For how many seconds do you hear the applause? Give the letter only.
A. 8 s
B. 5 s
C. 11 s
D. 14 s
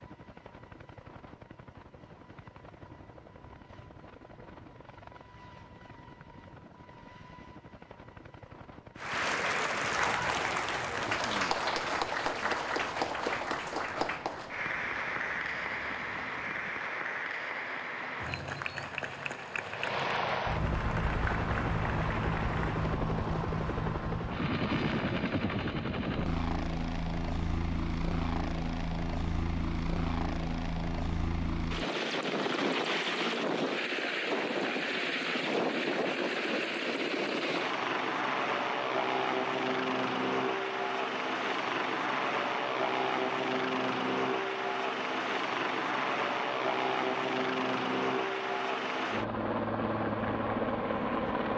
D.